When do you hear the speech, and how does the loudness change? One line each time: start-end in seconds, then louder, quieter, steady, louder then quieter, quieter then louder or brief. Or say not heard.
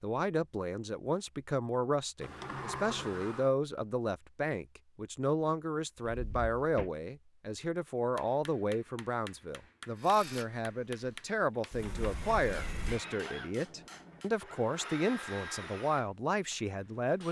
0.0-17.2 steady.